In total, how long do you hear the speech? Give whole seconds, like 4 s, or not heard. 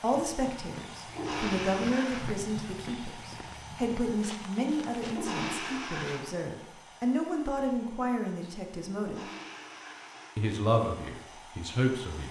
11 s.